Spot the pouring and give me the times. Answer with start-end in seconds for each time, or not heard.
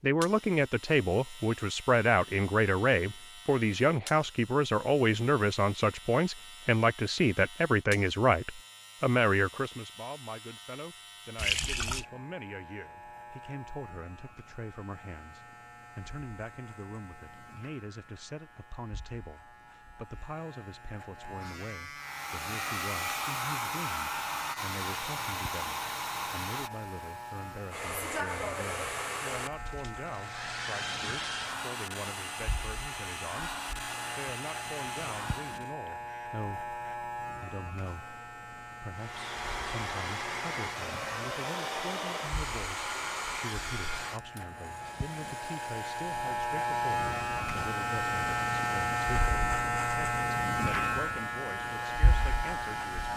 11.3-12.1.